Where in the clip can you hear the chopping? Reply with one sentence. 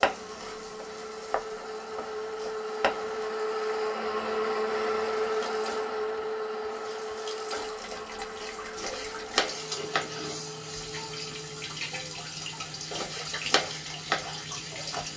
You can hear the chopping from 0.0 to 3.3 s, from 7.8 to 10.2 s and from 12.6 to 15.1 s.